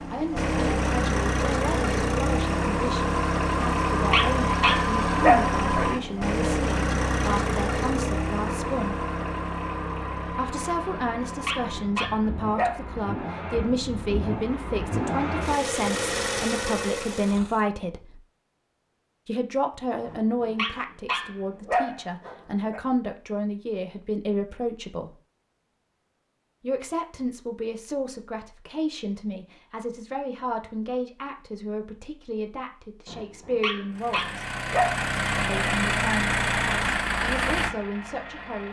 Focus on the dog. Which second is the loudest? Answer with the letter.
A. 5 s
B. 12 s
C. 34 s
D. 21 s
A.